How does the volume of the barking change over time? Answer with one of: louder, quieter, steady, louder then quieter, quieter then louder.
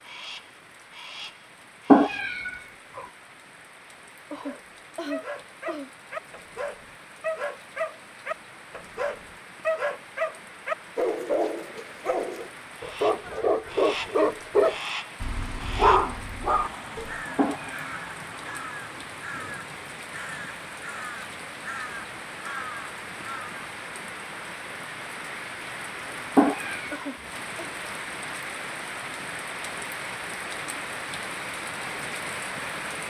louder.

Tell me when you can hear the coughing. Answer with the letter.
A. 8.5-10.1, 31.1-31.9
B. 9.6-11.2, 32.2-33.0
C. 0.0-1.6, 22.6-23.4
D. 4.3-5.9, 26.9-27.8
D.